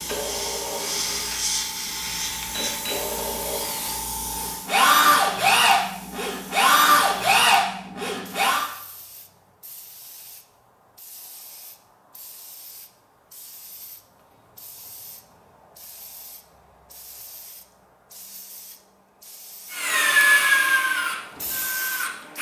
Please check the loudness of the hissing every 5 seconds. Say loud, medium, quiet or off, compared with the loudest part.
loud, quiet, quiet, quiet, medium.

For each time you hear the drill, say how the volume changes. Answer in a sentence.
The drill can be heard from 0.0 to 8.7 s, getting louder; and briefly from 19.7 to 22.3 s.